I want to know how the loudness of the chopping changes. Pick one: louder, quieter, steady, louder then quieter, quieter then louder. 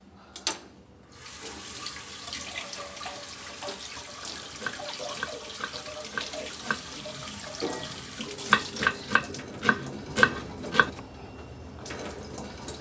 louder.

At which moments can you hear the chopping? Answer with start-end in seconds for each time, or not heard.
4.3-11.0.